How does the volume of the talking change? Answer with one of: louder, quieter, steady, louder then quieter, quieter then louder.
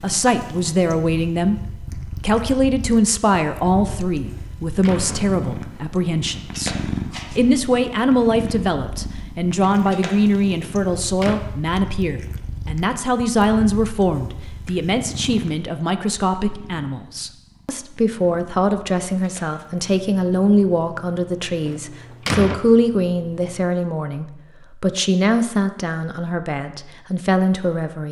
steady.